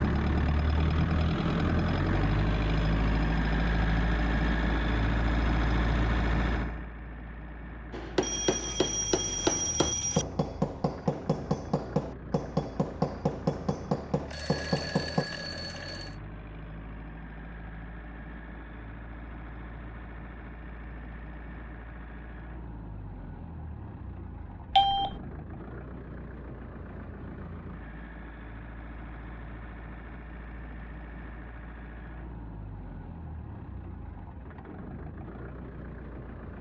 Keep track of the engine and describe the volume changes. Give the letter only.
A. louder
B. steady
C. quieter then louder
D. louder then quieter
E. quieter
E.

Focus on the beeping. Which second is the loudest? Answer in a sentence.
The loudest moment of the beeping is at 25 seconds.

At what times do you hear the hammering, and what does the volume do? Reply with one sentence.
The hammering can be heard from 7.9 to 15.2 s, at a steady volume.